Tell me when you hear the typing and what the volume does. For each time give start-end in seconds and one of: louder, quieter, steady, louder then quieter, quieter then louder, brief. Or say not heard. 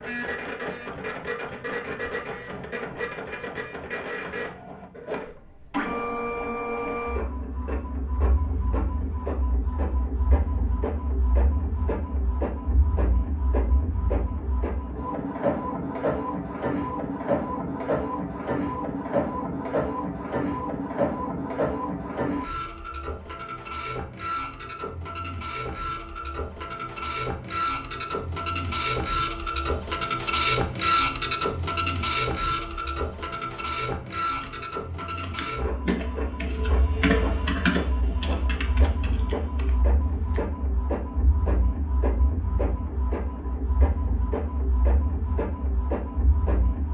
34.4-40.4 louder then quieter.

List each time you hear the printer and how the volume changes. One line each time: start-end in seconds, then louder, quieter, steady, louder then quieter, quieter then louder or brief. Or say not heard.
0.0-46.9 louder then quieter.